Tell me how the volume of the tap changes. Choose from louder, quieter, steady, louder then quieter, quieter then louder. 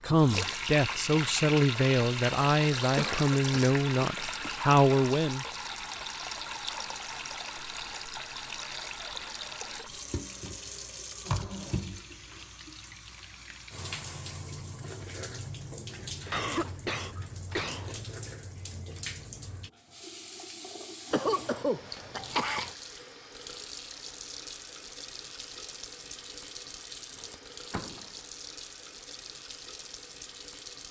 quieter.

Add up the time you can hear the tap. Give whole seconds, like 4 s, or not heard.
31 s.